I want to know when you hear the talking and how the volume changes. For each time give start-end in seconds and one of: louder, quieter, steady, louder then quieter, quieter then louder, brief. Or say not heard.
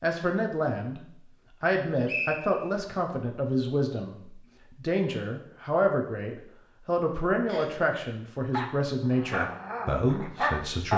0.0-1.0 brief
1.6-10.9 steady.